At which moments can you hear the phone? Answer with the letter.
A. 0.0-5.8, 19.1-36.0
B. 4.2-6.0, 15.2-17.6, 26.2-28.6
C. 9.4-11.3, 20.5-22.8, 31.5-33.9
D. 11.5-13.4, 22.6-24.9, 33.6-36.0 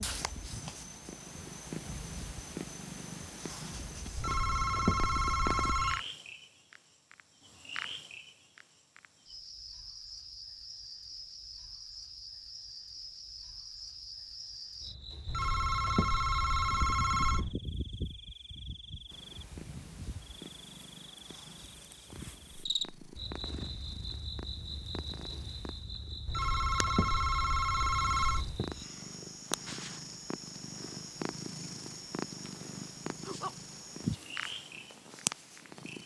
B.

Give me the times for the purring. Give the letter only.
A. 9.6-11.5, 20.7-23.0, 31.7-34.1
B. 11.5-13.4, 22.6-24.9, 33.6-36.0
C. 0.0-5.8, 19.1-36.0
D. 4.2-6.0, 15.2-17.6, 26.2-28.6
C.